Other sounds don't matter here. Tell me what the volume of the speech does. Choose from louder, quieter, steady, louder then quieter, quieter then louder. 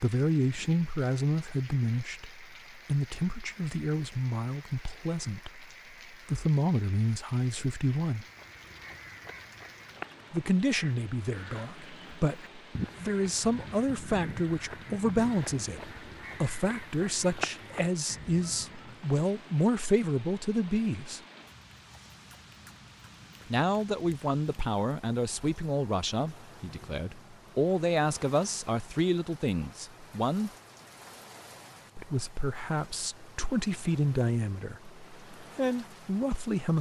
steady.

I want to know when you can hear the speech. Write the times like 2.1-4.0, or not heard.
0.0-8.2, 10.3-21.2, 23.5-30.5, 31.9-36.7.